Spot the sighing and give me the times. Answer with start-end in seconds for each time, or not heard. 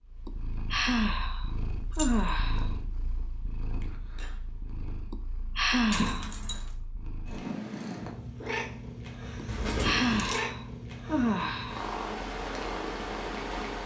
0.2-2.8, 5.1-6.3, 9.3-11.9.